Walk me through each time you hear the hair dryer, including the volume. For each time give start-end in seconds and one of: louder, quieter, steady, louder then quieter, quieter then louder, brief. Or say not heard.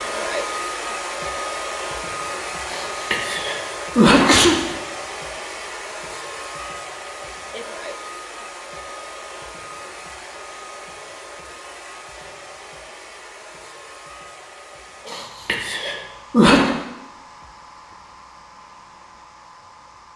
0.0-20.1 quieter.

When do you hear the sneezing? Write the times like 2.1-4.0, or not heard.
2.7-4.5, 15.1-16.7.